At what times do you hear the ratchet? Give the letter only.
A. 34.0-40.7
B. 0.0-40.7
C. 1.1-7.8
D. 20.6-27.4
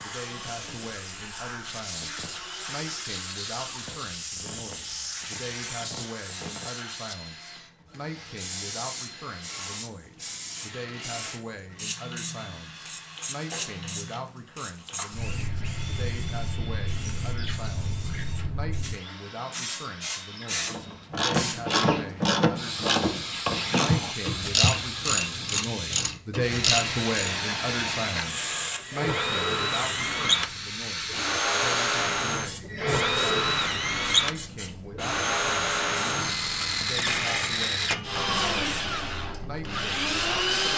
D.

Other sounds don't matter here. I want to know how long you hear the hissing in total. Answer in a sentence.
You can hear the hissing for 41 seconds altogether.